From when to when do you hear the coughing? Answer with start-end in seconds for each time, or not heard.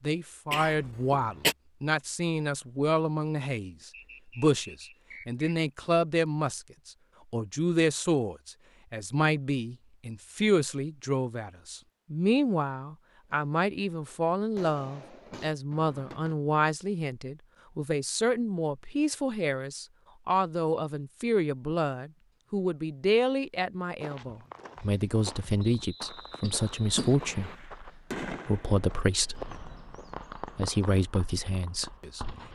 0.5-1.6, 26.4-27.4.